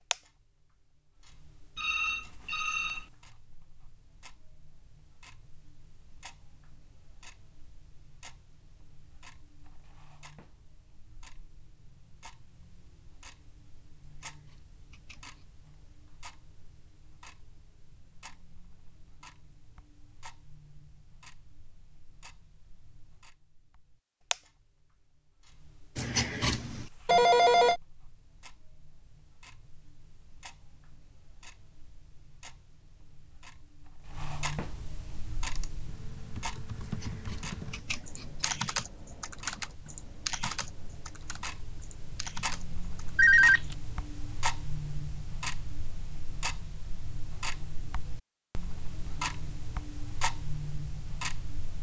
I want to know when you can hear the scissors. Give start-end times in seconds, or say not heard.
14.0-15.4, 25.9-26.9, 36.8-38.5.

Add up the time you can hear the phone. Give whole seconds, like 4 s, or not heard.
3 s.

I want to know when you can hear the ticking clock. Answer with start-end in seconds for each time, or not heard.
0.0-51.7.